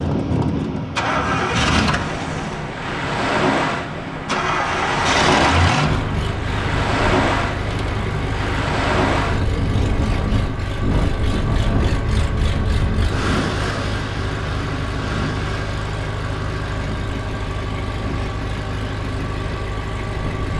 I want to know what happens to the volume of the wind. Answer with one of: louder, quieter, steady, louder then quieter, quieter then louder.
quieter.